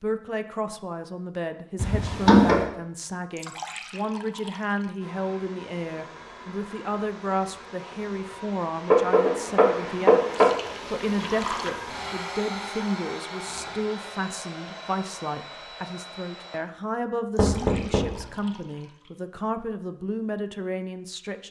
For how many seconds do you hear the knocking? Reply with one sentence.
The knocking can be heard for 3 seconds in total.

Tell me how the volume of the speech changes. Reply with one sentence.
The loudness of the speech stays about the same.